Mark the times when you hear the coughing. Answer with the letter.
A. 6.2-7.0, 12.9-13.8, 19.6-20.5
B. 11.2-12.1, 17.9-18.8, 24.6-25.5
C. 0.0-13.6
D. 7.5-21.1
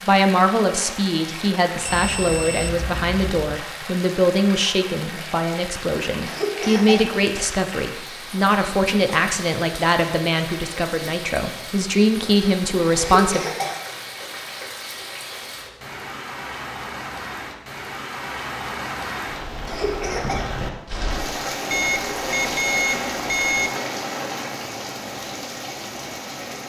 A.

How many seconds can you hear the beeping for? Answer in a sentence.
The beeping can be heard for 4 seconds in total.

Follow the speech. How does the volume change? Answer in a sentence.
The volume of the speech stays about the same.